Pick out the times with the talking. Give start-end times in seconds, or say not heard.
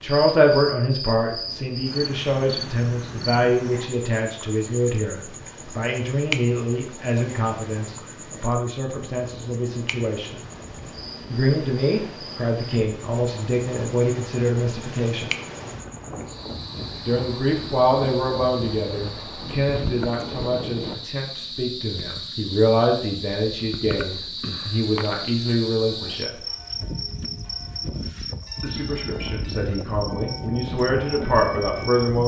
0.0-10.3, 11.3-15.3, 17.1-26.4, 28.6-32.2.